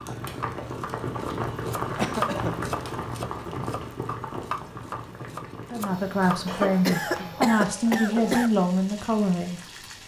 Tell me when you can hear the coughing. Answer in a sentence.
The coughing can be heard from 1.8 to 3.0 s and from 6.5 to 8.5 s.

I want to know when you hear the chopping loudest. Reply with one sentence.
The volume of the chopping peaks at 2 seconds.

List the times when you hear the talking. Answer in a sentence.
You can hear the talking from 5.7 to 9.6 s.